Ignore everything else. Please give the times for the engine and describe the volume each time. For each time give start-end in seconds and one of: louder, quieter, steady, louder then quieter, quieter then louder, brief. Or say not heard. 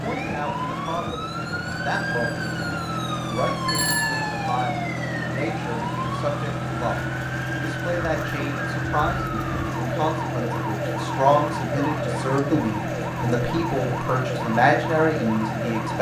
0.0-15.9 steady.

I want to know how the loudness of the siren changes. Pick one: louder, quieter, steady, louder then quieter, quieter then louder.
steady.